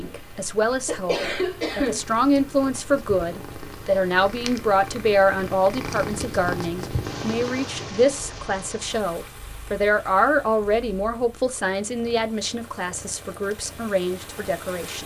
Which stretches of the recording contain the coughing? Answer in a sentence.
The coughing can be heard from 0.0 to 2.0 s.